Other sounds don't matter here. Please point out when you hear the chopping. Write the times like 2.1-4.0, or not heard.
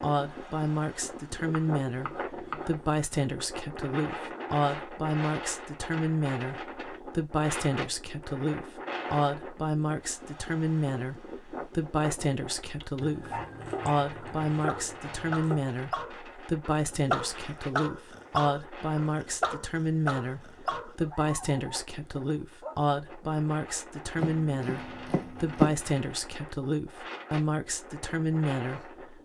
1.4-2.8, 13.0-15.7, 24.1-25.8.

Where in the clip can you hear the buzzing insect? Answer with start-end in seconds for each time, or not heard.
not heard.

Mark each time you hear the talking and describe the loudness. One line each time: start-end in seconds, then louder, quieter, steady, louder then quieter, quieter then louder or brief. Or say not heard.
0.0-29.2 steady.